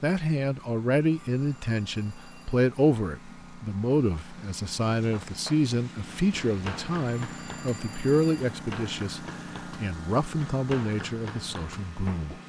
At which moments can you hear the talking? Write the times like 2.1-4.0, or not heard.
0.0-12.3.